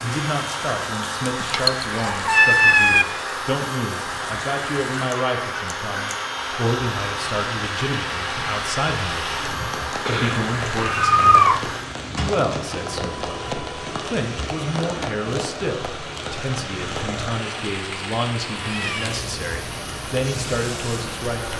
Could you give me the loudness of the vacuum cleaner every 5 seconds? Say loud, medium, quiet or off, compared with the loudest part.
loud, loud, loud, medium, medium.